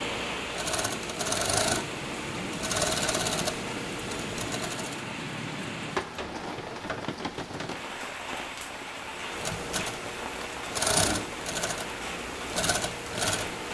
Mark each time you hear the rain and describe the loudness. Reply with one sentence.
You can hear the rain from 0.0 to 13.7 s, at a steady volume.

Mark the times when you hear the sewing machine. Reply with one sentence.
You can hear the sewing machine from 0.0 to 5.0 s and from 9.1 to 13.7 s.